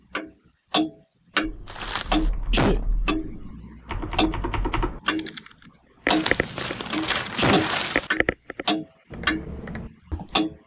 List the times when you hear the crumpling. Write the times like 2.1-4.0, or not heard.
1.6-2.3, 6.0-8.1.